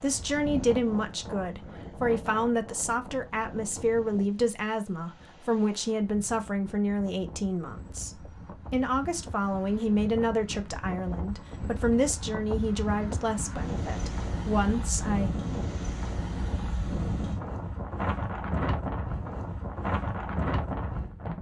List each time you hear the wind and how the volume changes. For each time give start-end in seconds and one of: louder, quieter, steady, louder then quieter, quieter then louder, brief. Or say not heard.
0.0-21.3 quieter then louder.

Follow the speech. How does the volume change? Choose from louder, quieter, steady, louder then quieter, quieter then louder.
steady.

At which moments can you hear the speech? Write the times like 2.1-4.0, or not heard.
0.0-15.3.